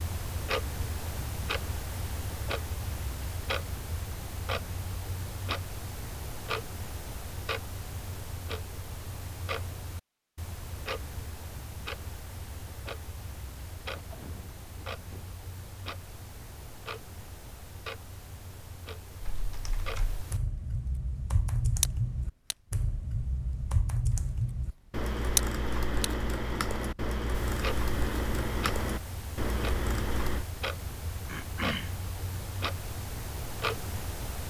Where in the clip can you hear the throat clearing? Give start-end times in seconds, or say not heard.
13.8-15.3, 31.2-31.9.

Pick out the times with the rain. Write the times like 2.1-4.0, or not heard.
not heard.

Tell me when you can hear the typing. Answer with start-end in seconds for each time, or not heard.
19.2-30.4.